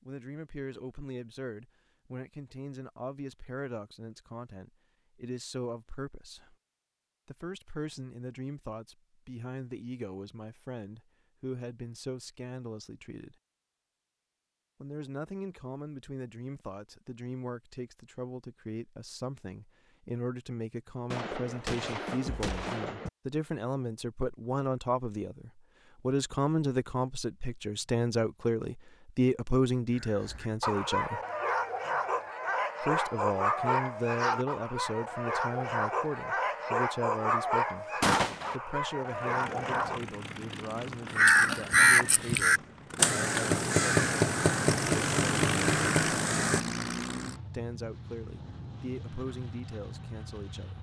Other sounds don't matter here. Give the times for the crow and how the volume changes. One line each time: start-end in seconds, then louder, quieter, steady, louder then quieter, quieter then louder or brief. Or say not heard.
41.1-46.6 quieter.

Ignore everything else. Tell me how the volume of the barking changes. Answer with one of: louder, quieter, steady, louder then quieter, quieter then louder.
steady.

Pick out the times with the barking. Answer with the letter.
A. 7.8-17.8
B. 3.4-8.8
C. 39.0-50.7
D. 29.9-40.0
D.